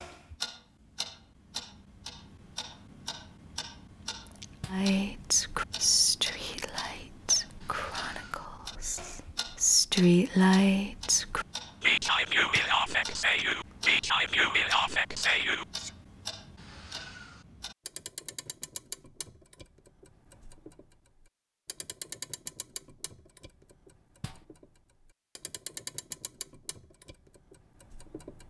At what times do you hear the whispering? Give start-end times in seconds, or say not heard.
4.7-15.9.